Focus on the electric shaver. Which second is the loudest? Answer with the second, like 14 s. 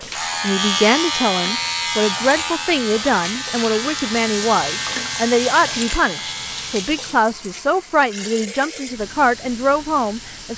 1 s.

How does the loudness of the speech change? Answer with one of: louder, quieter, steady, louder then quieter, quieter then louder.
steady.